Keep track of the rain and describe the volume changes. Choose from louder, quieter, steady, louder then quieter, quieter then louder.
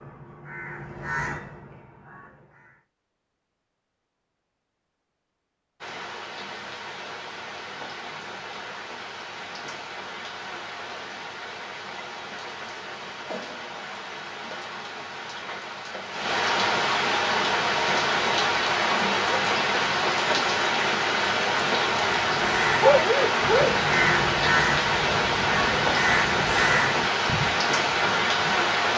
louder.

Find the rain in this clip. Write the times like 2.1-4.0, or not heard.
5.8-28.9.